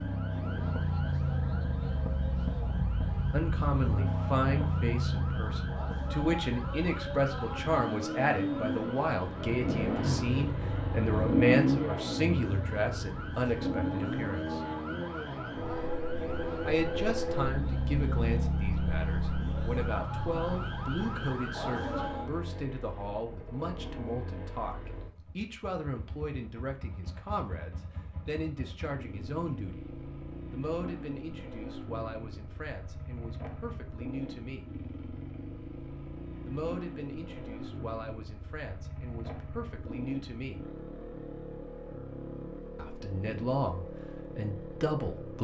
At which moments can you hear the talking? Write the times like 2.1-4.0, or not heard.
3.3-14.6, 16.6-29.9, 30.5-34.7, 36.5-40.6, 42.8-45.4.